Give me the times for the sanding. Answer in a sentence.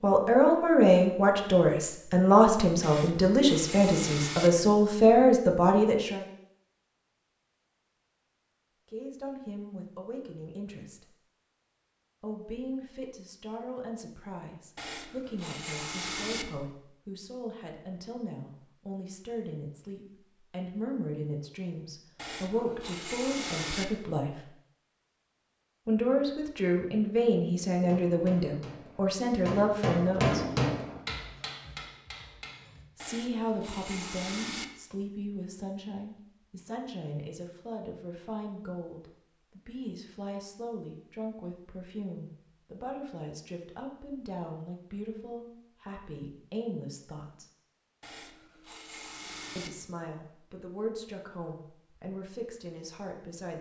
The sanding can be heard from 2.8 to 4.5 s, from 14.8 to 16.4 s, from 22.1 to 23.9 s, from 33.0 to 34.6 s and from 48.0 to 49.7 s.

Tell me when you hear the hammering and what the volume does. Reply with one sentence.
You can hear the hammering from 27.8 to 32.9 s, getting louder then quieter.